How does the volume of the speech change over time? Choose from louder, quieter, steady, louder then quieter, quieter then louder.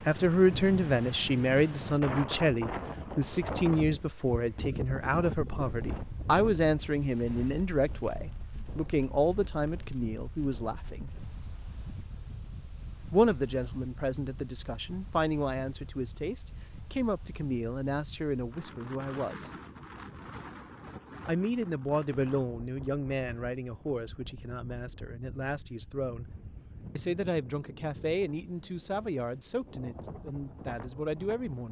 quieter.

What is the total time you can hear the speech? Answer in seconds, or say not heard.
27 s.